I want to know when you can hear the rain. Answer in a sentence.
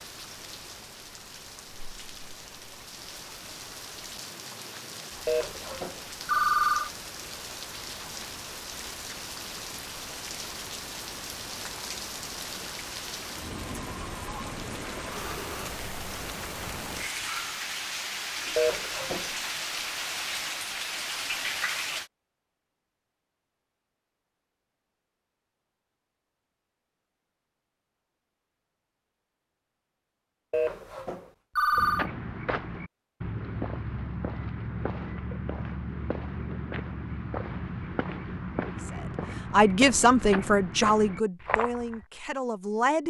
You can hear the rain from 0.0 to 22.1 s.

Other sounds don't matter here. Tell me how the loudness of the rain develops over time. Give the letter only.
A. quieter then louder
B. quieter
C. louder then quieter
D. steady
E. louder
E.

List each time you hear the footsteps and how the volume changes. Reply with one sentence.
You can hear the footsteps from 31.7 to 42.0 s, at a steady volume.